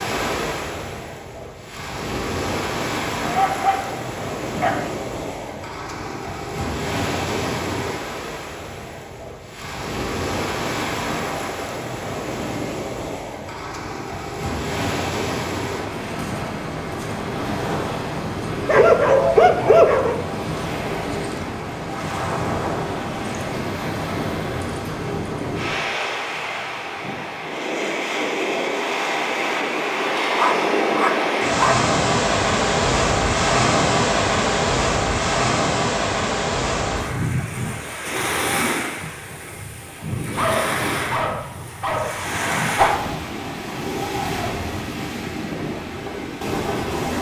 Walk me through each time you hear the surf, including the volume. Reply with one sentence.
The surf can be heard from 0.0 to 47.1 s, getting louder then quieter.